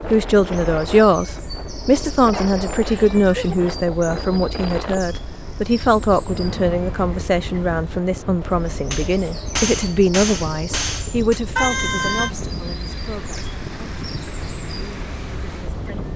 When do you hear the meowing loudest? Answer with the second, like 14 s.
12 s.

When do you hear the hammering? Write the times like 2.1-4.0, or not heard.
8.9-11.4.